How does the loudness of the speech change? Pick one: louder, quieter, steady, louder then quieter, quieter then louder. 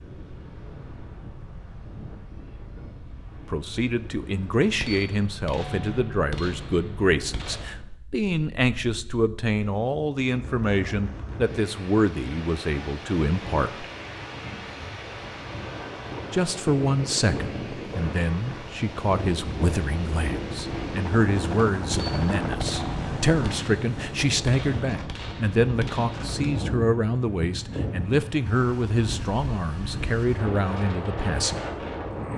steady.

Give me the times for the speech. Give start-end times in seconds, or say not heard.
3.5-13.8, 16.3-31.6.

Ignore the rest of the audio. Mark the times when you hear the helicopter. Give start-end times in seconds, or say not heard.
15.4-23.6.